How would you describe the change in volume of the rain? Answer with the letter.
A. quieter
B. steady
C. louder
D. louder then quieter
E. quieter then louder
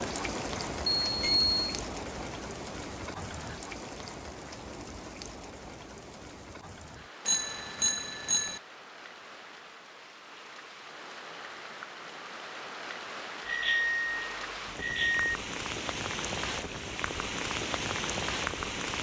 E.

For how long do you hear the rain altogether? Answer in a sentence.
The rain can be heard for 19 seconds in total.